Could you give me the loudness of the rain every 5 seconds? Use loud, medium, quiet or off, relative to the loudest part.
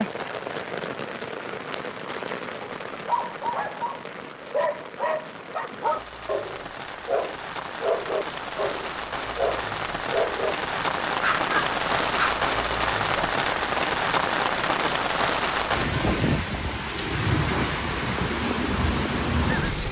medium, medium, loud, loud.